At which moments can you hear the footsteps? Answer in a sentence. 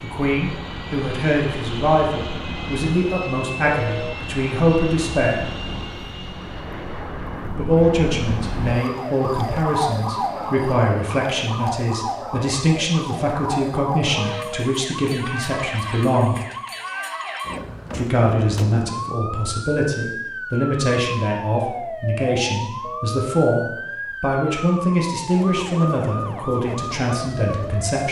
You can't hear the footsteps here.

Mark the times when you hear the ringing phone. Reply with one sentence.
You can hear the ringing phone from 3.7 to 4.2 s, from 14.1 to 14.7 s and from 22.8 to 23.2 s.